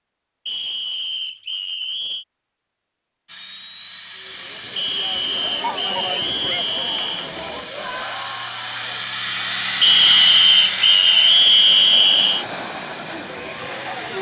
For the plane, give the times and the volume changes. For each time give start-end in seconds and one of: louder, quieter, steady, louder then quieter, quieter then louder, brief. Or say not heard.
3.2-14.1 louder then quieter.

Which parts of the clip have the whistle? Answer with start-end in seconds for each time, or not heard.
0.5-2.2, 4.8-7.3, 9.8-12.4.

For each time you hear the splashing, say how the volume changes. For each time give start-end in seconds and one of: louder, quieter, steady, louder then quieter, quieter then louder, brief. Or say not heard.
not heard.